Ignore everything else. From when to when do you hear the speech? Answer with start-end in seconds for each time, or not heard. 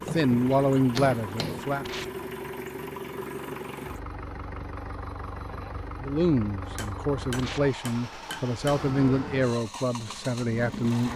0.1-2.1, 6.0-11.1.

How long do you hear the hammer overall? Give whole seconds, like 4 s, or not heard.
4 s.